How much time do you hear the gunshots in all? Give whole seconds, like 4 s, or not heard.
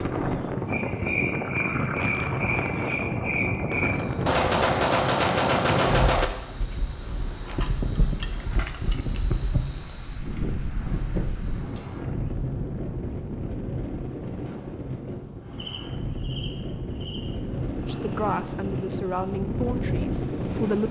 2 s.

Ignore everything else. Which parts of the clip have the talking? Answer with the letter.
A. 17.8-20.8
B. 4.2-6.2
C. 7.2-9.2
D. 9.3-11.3
A.